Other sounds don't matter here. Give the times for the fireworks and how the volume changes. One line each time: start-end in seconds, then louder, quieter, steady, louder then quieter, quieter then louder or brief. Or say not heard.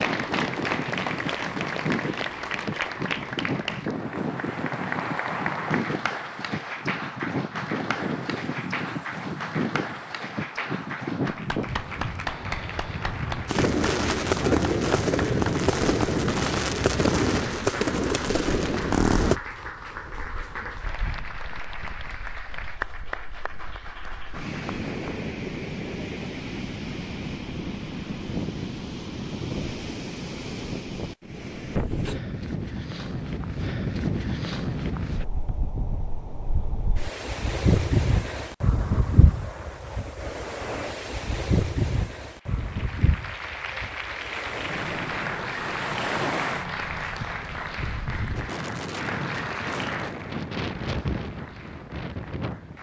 13.4-19.4 steady.